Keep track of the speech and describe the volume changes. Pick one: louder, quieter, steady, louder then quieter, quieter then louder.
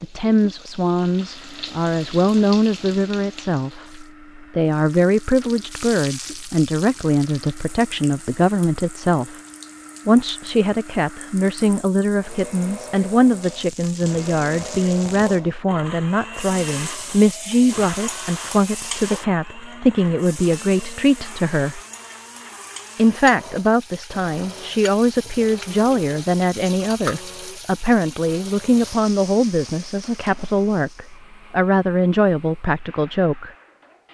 steady.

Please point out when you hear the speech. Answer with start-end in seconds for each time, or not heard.
0.0-9.4, 10.1-21.8, 22.9-33.5.